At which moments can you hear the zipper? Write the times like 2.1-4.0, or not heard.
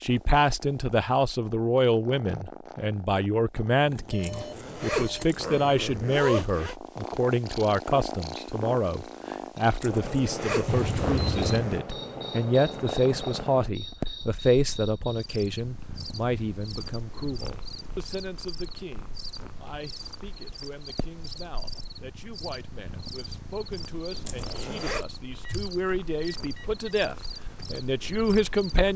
4.2-6.8, 9.8-11.8, 24.2-25.1.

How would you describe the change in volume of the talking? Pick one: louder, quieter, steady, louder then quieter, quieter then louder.
quieter then louder.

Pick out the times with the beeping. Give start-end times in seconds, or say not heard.
3.8-5.8, 10.7-11.7, 25.3-26.9.